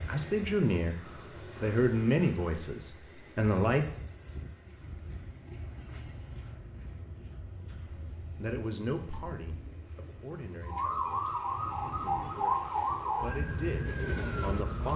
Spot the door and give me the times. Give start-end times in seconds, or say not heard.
not heard.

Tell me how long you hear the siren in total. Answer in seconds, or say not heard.
4 s.